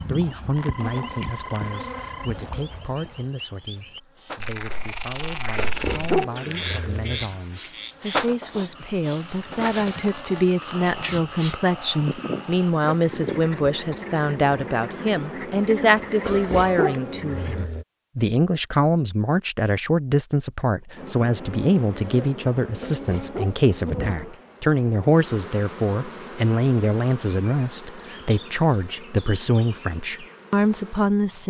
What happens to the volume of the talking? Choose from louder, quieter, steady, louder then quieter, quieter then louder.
louder.